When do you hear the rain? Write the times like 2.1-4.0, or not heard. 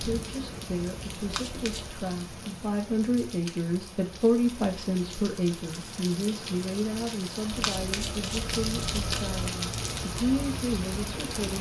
0.0-11.5.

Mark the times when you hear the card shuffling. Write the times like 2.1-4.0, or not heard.
1.2-1.9, 7.5-9.4.